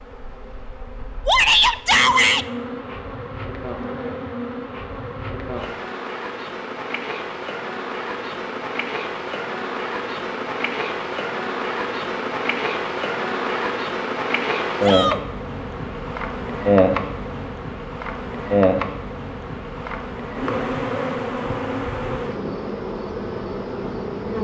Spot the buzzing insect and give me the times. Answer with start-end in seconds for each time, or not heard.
0.0-24.3.